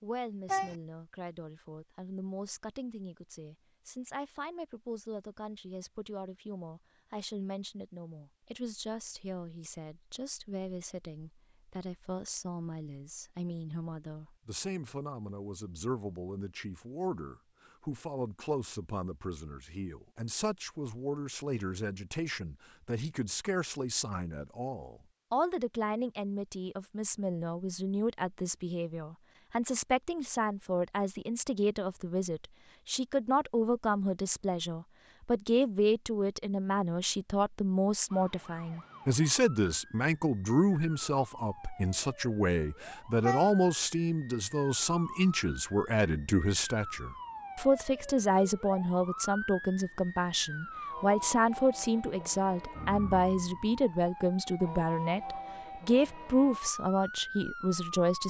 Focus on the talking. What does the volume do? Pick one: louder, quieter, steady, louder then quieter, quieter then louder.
louder.